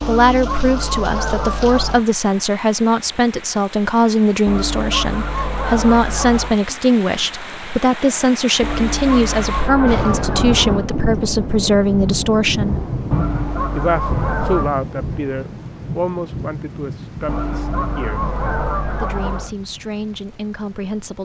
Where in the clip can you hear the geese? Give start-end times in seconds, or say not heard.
0.0-2.0, 4.5-6.6, 8.6-10.8, 13.1-14.8, 17.2-19.5.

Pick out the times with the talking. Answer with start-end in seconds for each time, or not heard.
0.1-12.8, 13.8-18.2, 19.0-21.2.